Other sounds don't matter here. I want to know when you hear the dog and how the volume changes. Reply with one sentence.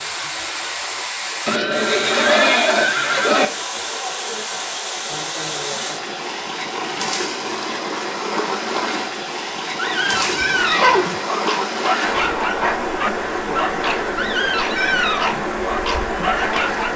You can hear the dog from 9.8 to 16.9 s, at a steady volume.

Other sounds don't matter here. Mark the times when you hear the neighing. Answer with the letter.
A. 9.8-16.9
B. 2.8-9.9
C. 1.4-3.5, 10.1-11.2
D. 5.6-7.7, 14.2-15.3
C.